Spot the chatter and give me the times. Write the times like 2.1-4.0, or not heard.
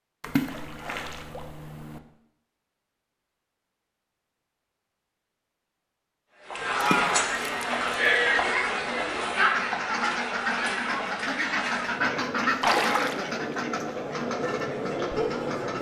6.3-15.7.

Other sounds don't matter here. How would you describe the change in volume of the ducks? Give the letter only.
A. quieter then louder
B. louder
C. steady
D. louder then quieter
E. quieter
D.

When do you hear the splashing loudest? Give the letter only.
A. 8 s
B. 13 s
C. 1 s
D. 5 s
B.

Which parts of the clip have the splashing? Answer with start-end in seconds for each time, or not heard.
0.2-2.0, 6.8-7.7, 12.6-13.6.